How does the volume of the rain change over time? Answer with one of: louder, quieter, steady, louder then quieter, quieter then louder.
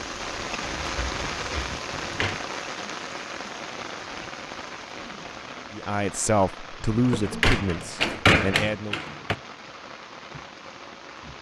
quieter.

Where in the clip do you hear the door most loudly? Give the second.
8 s.